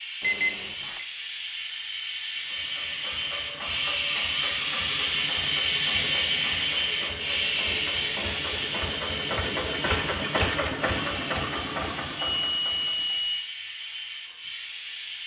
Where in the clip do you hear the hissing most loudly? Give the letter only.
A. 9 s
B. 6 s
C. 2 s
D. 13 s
B.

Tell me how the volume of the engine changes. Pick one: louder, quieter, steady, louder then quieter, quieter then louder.
louder.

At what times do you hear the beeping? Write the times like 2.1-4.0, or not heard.
0.2-1.1, 6.4-8.2, 11.8-13.4.